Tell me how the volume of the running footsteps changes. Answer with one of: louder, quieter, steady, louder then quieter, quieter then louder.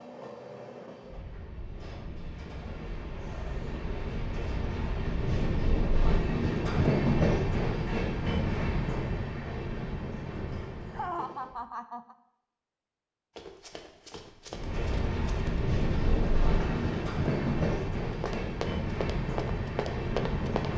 louder.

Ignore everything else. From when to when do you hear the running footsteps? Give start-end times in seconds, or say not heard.
13.3-20.7.